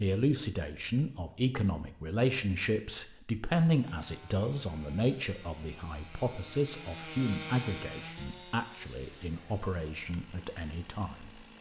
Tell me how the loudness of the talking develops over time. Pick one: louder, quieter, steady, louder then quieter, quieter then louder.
quieter.